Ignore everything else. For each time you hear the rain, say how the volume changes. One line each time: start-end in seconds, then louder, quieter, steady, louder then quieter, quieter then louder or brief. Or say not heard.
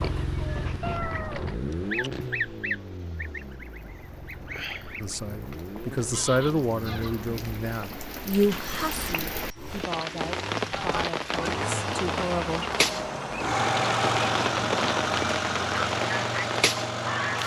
0.0-17.4 louder.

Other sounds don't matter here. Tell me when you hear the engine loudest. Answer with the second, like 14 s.
14 s.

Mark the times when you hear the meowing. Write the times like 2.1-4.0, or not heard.
0.8-1.6.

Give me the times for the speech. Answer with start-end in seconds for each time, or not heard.
5.0-12.7.